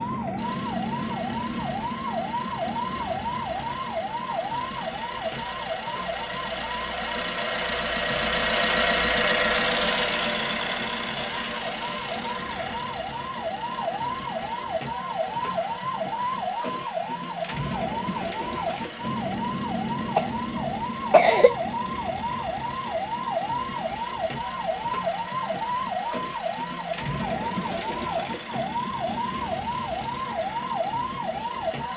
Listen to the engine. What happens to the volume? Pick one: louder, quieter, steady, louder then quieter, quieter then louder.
louder then quieter.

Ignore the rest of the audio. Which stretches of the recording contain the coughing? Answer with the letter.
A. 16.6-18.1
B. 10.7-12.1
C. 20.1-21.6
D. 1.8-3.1
C.